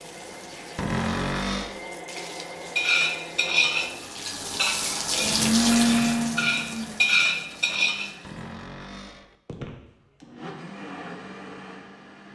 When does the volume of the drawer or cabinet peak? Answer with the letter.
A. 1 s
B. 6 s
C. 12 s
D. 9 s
A.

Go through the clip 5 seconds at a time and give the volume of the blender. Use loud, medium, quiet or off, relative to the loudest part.
quiet, loud, quiet.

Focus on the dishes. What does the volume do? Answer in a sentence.
The loudness of the dishes goes down, then up.